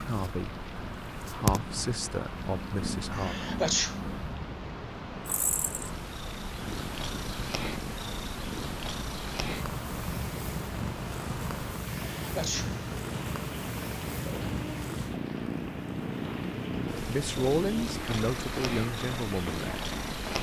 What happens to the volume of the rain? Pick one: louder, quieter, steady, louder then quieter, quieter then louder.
steady.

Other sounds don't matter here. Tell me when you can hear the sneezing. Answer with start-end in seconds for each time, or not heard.
3.1-4.0, 11.9-12.9.